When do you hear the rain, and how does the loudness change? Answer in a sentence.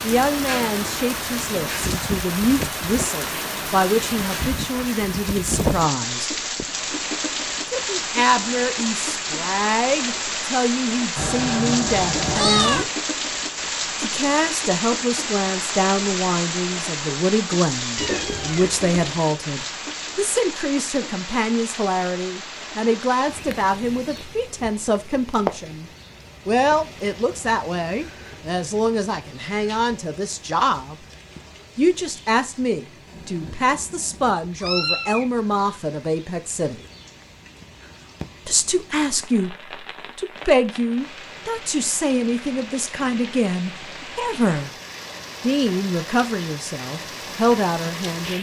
The rain can be heard from 0.0 to 48.3 s, getting quieter then louder.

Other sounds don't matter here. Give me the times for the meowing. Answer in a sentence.
You can hear the meowing from 11.2 to 12.8 s, from 17.9 to 19.0 s and from 33.0 to 35.2 s.